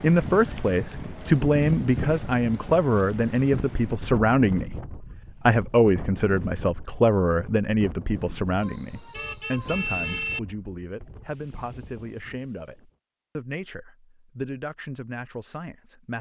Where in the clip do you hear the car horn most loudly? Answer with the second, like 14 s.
10 s.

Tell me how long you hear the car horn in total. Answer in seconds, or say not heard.
2 s.